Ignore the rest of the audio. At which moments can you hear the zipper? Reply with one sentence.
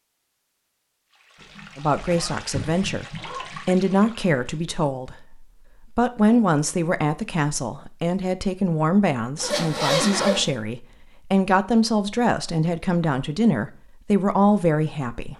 The zipper can be heard from 1.4 to 3.6 s and from 9.4 to 10.5 s.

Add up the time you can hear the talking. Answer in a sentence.
The talking can be heard for 13 seconds in total.